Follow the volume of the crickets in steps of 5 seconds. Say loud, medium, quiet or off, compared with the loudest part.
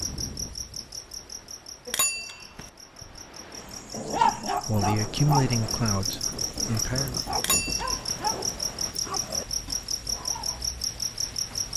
medium, loud, loud.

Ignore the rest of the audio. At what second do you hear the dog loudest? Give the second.
4 s.